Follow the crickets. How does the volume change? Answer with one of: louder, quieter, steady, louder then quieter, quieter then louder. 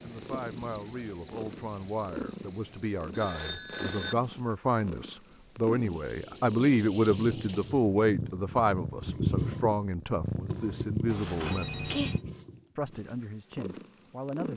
quieter then louder.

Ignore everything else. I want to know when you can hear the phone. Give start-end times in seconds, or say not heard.
3.1-4.2, 11.1-12.2.